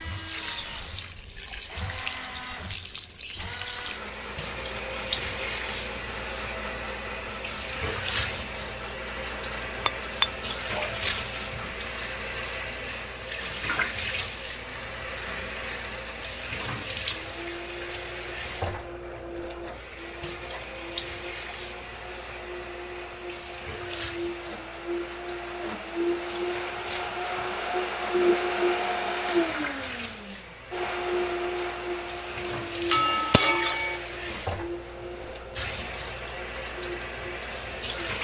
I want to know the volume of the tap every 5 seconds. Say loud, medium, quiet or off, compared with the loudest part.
loud, loud, loud, loud, medium, medium, medium, loud.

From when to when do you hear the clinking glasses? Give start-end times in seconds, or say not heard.
9.8-10.9, 32.9-34.0.